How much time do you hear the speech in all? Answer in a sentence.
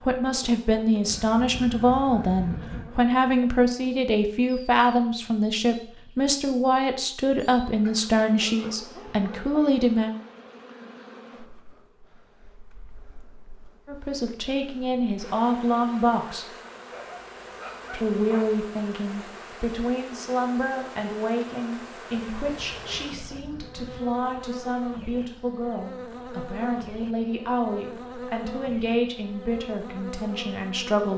The speech can be heard for 26 seconds in total.